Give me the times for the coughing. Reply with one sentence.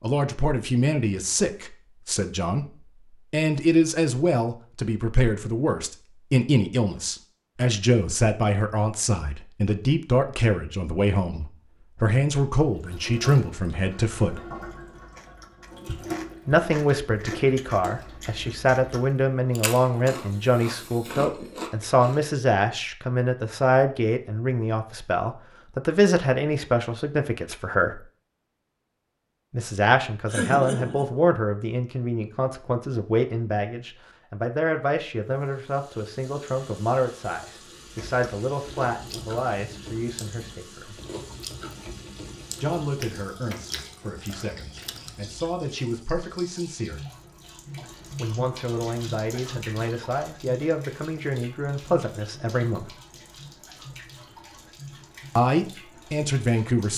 You can hear the coughing from 30.2 to 31.1 s.